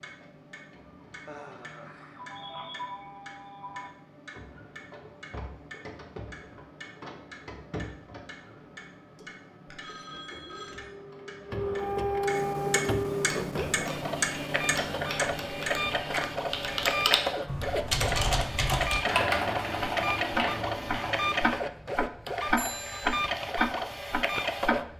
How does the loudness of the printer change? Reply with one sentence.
The volume of the printer goes up.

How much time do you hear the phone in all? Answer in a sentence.
The phone can be heard for 4 seconds in total.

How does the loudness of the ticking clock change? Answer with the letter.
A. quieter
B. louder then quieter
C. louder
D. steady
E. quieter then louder
C.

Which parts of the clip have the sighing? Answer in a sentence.
The sighing can be heard from 1.2 to 2.4 s.